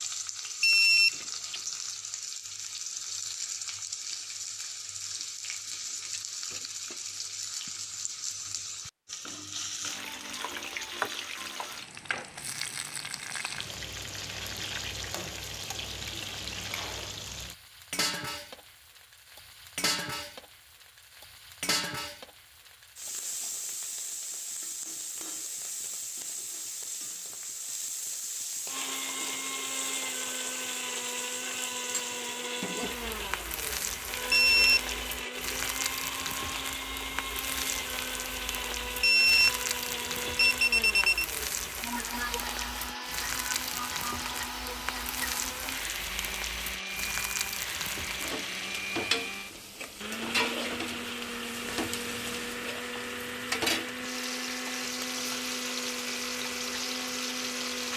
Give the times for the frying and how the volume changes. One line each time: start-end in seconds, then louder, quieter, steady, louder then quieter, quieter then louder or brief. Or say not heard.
0.0-57.9 steady.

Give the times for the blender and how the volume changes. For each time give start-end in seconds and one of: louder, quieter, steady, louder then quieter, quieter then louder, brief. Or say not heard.
28.6-57.9 steady.